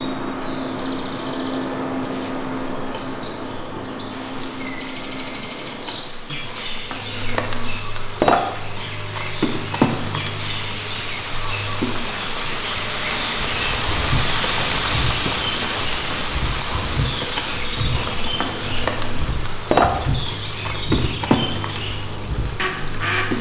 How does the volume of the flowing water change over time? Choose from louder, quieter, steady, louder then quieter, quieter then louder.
louder then quieter.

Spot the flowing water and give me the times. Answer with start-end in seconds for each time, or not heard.
4.5-23.3.